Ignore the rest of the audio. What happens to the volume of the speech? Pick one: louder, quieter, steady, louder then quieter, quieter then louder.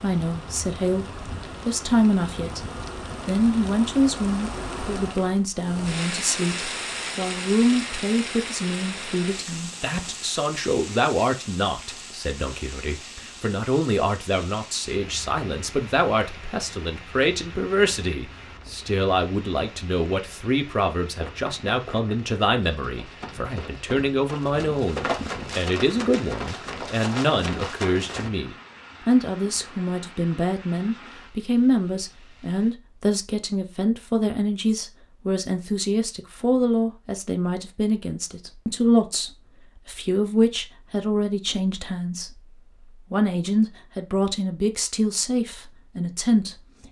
steady.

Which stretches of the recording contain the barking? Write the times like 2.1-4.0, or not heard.
not heard.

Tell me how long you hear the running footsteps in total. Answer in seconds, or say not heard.
7 s.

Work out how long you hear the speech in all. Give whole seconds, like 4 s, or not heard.
47 s.